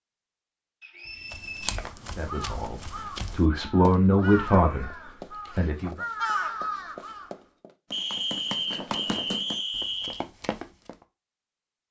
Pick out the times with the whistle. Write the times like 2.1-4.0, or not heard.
0.8-1.9, 7.9-10.2.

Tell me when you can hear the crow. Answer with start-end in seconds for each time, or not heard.
1.8-7.3.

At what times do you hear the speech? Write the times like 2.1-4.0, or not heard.
2.1-6.0.